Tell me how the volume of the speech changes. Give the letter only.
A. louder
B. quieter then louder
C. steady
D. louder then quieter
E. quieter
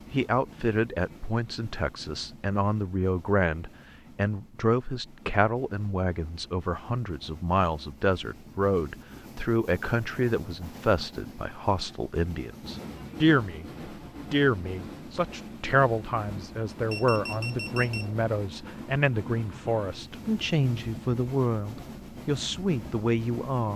C.